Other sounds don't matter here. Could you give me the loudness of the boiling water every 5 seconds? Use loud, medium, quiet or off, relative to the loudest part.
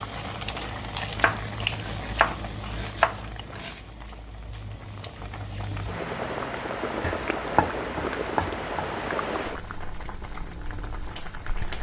loud, loud, medium.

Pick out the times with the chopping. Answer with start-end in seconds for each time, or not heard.
1.1-3.8, 7.0-9.0.